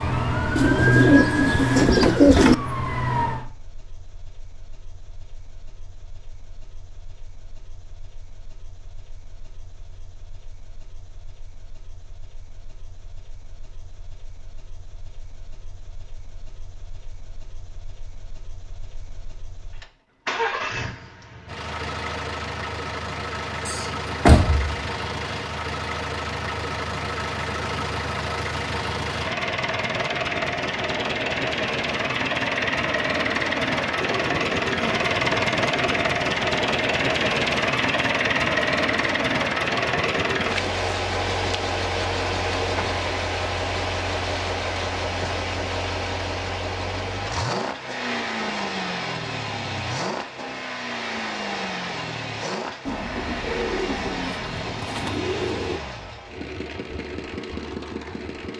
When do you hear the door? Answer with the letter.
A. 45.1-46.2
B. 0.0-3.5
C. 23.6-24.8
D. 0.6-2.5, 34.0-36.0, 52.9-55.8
C.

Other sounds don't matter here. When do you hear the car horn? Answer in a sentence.
The car horn can't be heard in this clip.